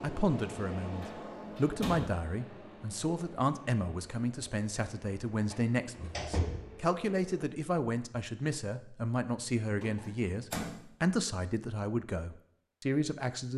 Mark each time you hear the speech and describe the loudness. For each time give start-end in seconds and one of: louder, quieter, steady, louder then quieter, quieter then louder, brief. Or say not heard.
0.0-13.5 steady.